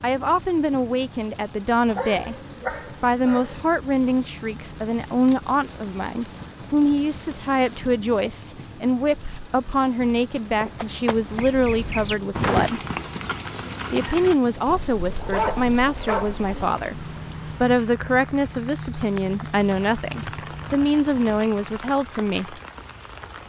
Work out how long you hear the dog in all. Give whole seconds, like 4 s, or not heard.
3 s.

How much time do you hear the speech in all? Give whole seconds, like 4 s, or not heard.
21 s.